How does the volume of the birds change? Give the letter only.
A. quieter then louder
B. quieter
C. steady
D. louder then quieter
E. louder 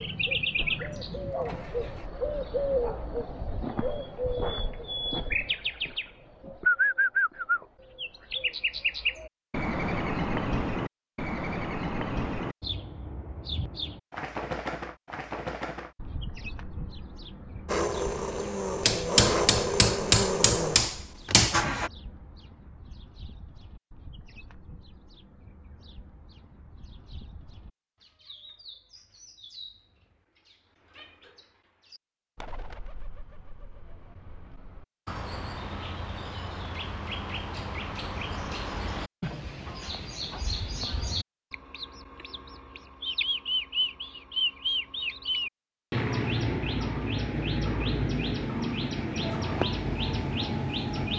A.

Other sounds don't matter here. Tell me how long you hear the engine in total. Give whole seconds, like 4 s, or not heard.
6 s.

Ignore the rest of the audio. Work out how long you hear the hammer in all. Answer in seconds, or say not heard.
3 s.